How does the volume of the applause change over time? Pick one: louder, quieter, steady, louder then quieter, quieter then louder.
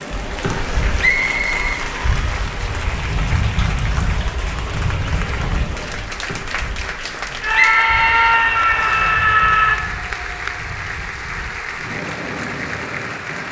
steady.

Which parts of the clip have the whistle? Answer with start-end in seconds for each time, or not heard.
1.0-1.8, 7.5-9.1.